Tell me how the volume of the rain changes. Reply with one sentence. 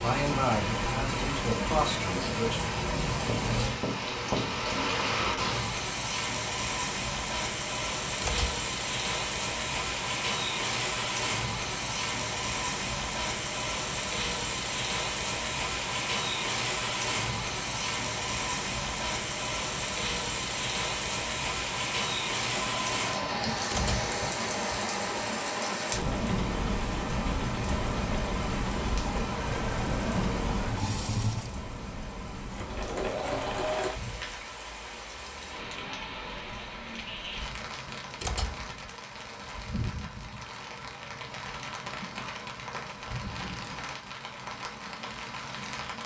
The loudness of the rain goes down.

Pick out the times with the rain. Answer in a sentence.
The rain can be heard from 0.0 to 46.0 s.